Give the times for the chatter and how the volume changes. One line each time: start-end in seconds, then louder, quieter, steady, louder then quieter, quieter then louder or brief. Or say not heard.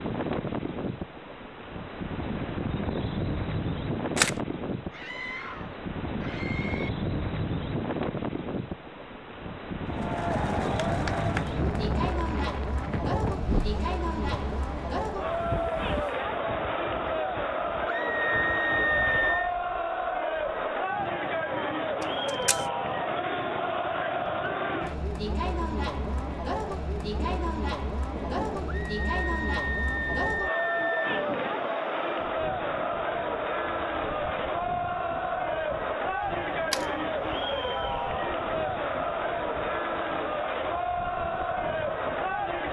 9.8-42.6 steady.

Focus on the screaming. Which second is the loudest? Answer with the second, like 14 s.
19 s.